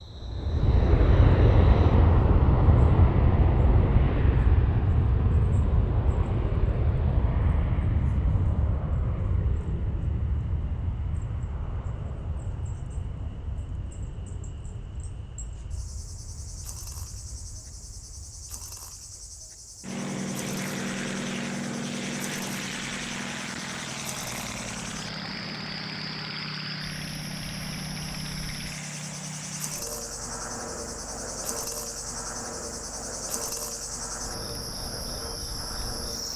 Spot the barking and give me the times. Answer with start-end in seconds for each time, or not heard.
not heard.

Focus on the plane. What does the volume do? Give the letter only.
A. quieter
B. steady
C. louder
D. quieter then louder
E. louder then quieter
A.